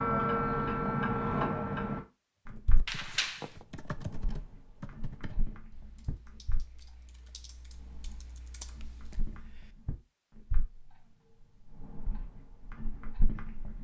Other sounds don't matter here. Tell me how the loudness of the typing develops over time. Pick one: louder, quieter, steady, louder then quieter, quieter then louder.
quieter then louder.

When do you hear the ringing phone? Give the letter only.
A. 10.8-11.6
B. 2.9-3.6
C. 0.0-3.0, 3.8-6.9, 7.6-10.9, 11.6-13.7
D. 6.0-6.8
B.